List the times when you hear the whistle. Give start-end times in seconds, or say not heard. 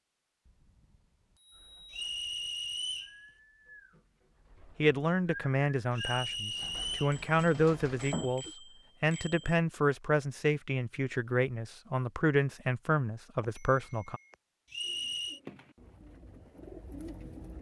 1.9-3.1, 5.9-7.2, 14.7-15.4.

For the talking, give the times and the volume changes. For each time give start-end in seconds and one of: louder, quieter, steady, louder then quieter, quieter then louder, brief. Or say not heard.
4.8-14.2 steady.